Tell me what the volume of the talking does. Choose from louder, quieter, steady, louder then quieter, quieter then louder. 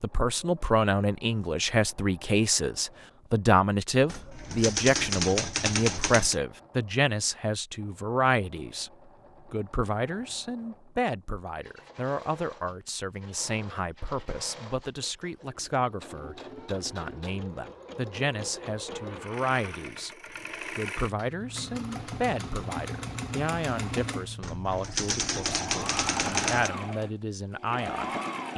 quieter.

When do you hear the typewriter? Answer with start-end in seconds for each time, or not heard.
4.0-6.3, 24.4-26.7.